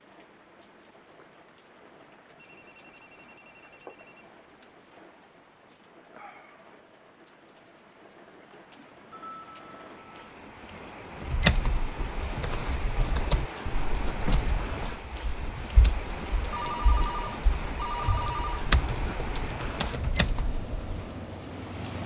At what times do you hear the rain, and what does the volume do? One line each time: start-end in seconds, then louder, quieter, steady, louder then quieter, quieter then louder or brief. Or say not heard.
0.0-22.0 louder.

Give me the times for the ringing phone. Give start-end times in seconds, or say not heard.
2.4-4.7, 9.1-10.3, 16.5-18.6.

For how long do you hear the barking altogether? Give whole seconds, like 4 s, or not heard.
not heard.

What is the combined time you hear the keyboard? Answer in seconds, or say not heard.
10 s.